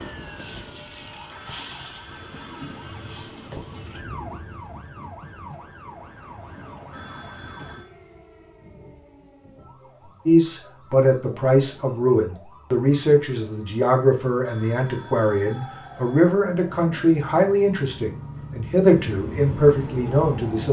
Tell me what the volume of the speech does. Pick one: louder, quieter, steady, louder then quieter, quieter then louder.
steady.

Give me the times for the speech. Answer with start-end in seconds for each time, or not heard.
10.2-20.6.